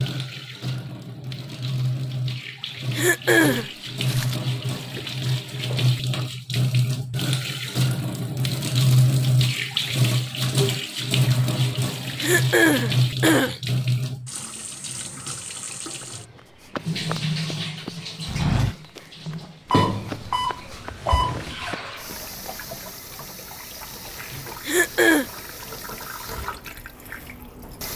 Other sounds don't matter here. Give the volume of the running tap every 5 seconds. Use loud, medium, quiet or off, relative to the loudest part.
medium, loud, loud, medium, quiet, quiet.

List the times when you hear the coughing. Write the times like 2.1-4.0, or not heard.
3.0-3.7, 12.2-13.6, 24.6-25.2.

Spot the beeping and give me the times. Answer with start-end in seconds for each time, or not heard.
19.7-21.8.